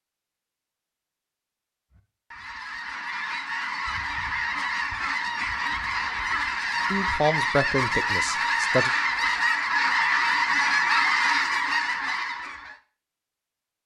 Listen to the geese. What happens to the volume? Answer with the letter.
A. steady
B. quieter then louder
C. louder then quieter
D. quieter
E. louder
E.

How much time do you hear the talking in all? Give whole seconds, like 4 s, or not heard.
2 s.